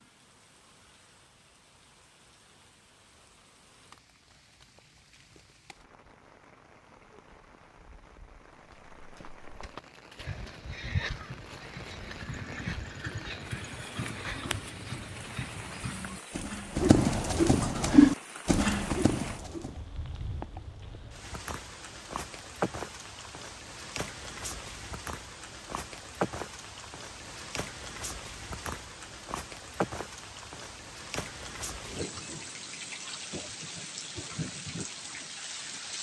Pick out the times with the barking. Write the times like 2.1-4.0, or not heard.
not heard.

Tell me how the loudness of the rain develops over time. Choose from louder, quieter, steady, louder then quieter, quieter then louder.
louder.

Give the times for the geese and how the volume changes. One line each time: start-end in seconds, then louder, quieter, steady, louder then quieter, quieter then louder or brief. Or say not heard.
not heard.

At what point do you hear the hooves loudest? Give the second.
18 s.